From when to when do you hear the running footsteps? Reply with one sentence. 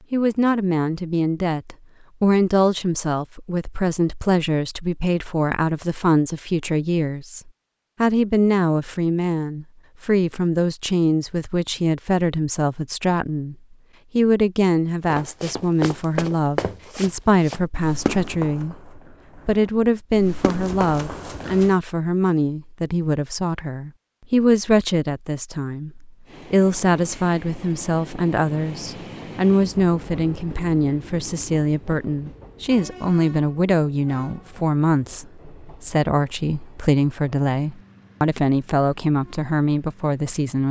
You can hear the running footsteps from 15.1 to 21.8 s.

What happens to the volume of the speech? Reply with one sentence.
The volume of the speech stays about the same.